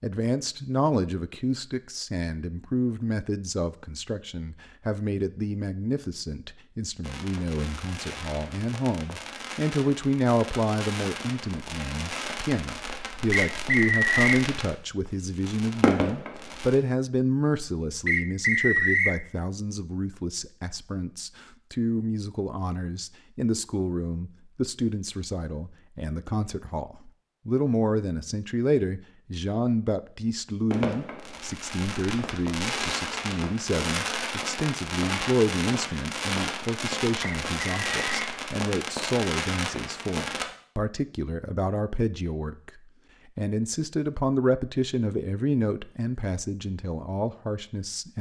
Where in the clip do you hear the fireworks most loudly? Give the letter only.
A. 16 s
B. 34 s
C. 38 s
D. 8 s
A.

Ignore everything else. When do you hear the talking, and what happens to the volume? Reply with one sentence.
The talking can be heard from 0.0 to 48.1 s, at a steady volume.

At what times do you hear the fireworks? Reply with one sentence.
The fireworks can be heard from 7.0 to 16.8 s and from 30.7 to 40.5 s.